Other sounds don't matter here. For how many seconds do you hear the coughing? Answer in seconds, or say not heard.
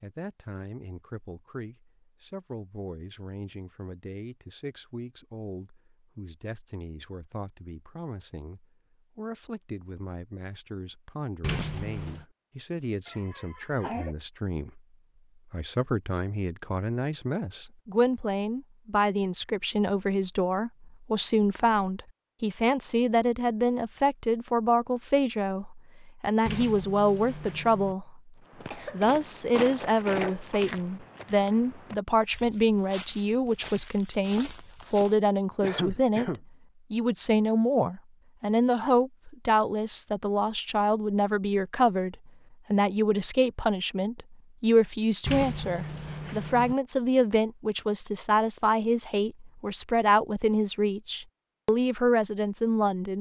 3 s.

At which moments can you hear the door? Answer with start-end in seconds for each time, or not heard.
11.4-12.2, 26.4-27.9, 45.2-46.8.